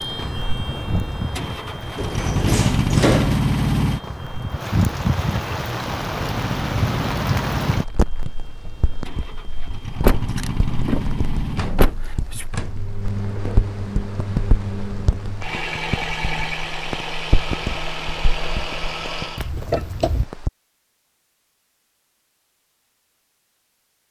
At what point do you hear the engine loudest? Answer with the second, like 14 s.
3 s.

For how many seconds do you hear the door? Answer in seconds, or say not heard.
5 s.